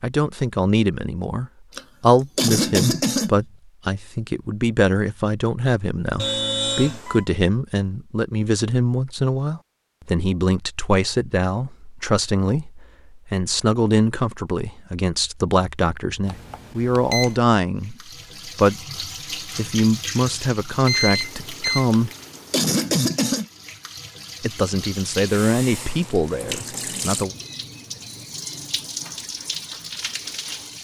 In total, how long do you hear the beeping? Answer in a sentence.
You can hear the beeping for 4 seconds altogether.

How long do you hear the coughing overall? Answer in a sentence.
You can hear the coughing for 3 seconds altogether.